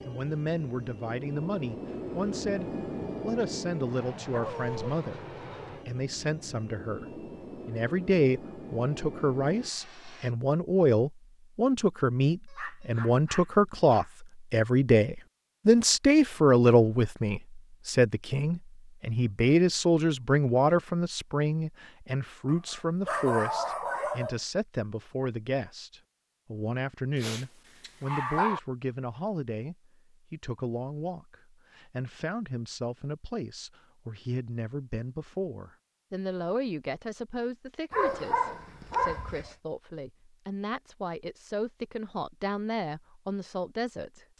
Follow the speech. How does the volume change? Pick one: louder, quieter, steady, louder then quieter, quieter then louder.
louder then quieter.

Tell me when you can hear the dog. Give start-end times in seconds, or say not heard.
4.3-5.0, 12.5-14.1, 22.4-24.4, 27.2-28.6, 37.9-39.5.